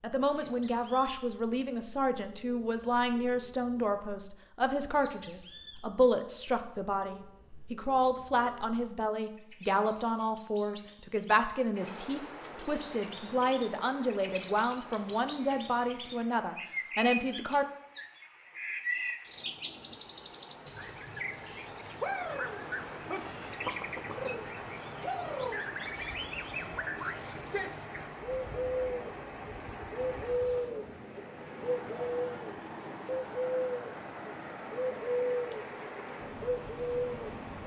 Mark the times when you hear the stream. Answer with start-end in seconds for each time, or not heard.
11.7-37.6.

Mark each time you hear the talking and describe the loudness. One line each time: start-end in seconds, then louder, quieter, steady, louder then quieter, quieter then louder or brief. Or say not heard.
0.0-17.6 steady.